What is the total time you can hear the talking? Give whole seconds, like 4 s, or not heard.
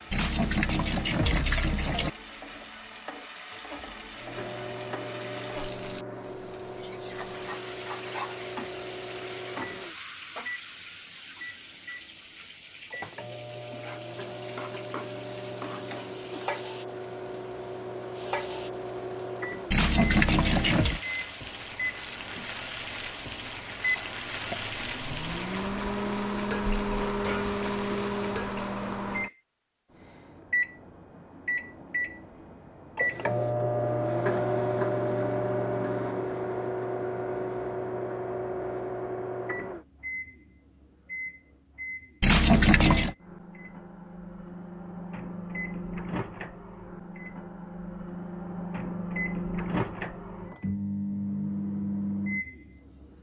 not heard.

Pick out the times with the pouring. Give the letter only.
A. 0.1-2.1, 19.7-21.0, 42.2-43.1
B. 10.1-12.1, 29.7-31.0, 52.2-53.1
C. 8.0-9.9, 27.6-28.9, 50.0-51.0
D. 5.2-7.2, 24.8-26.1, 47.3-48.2
A.